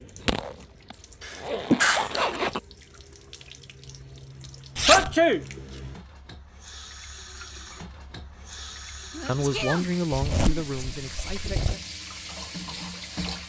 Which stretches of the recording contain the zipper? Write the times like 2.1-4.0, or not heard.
0.2-2.6, 4.8-5.2, 10.1-11.8.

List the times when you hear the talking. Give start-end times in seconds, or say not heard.
9.2-11.8.